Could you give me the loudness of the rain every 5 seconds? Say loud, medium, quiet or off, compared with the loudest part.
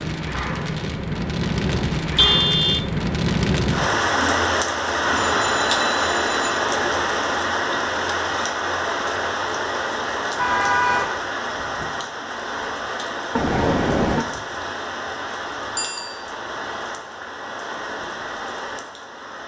loud, loud, medium, medium.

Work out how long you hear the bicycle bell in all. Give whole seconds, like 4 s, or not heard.
2 s.